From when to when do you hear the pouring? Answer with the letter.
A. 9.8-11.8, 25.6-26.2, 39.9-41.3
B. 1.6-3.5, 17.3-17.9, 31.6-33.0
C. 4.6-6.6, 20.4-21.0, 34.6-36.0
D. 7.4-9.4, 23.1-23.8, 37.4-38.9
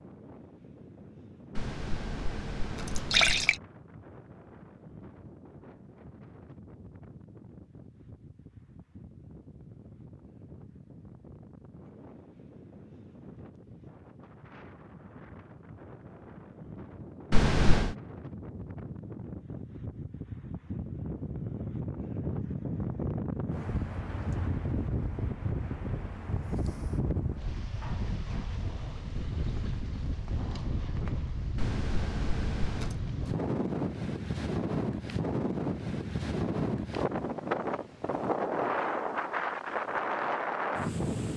B.